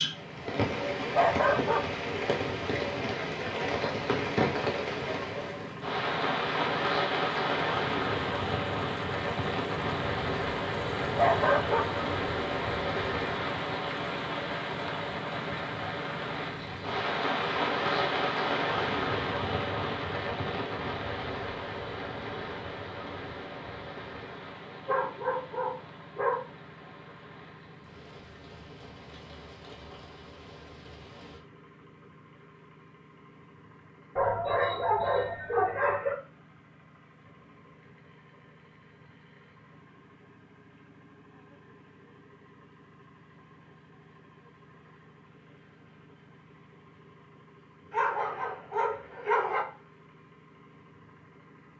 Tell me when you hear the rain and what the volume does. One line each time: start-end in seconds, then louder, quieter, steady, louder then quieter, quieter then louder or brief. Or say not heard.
0.0-31.4 quieter.